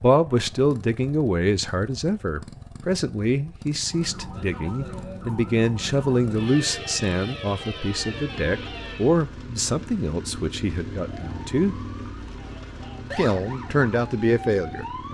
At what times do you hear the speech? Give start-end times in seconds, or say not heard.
0.0-11.8, 13.2-14.8.